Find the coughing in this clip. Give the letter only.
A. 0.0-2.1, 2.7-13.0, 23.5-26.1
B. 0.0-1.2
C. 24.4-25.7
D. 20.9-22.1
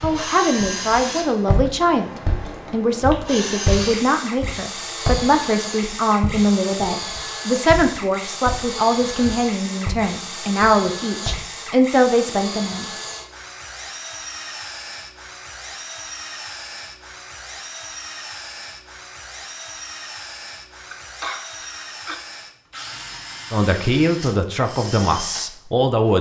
D.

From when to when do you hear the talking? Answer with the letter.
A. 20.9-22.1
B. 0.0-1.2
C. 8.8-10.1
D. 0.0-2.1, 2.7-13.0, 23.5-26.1
D.